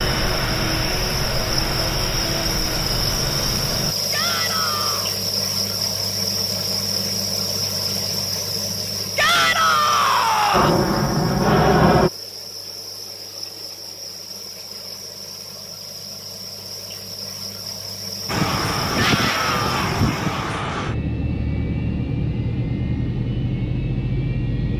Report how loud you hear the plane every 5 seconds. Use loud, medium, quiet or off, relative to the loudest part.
medium, off, loud, medium, medium.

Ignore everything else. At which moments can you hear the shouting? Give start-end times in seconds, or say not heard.
4.1-5.2, 9.2-10.8, 18.9-19.7.